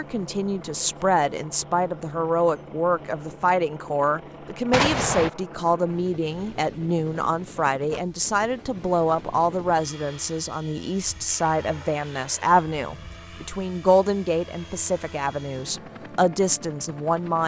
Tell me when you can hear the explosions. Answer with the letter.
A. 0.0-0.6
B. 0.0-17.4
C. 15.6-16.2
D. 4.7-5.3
D.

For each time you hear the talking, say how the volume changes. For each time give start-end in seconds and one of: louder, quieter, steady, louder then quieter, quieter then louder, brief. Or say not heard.
0.0-17.4 steady.